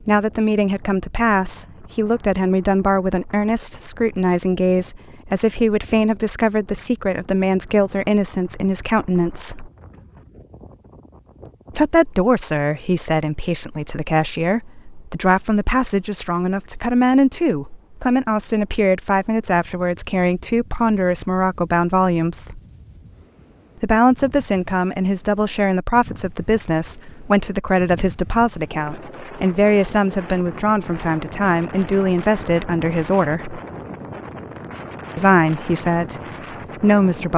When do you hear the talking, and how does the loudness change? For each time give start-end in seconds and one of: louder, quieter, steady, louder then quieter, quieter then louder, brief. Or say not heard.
0.1-9.7 steady
11.8-22.6 steady
23.8-33.6 steady
35.1-36.2 brief
36.8-37.3 brief.